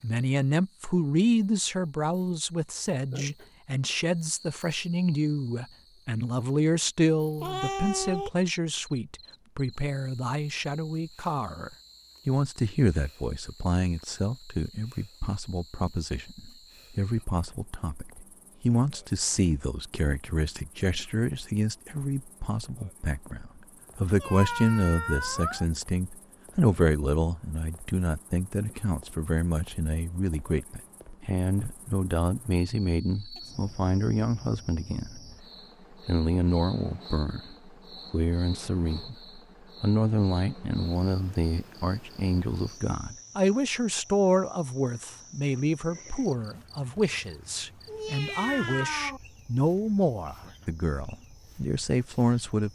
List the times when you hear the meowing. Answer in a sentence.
The meowing can be heard from 7.3 to 8.3 s, from 24.1 to 25.6 s and from 47.9 to 49.2 s.